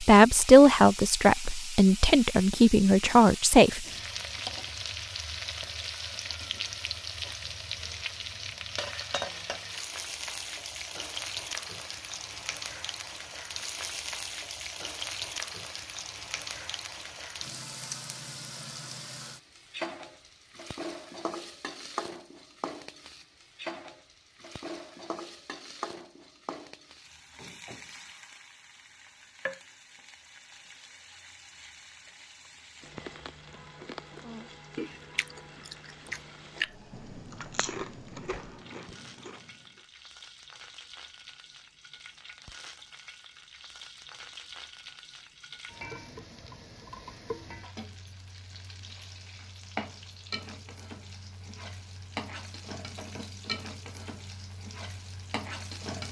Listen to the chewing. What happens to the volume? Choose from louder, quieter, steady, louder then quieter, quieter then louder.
louder then quieter.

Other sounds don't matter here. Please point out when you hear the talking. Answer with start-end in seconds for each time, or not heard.
0.0-3.9.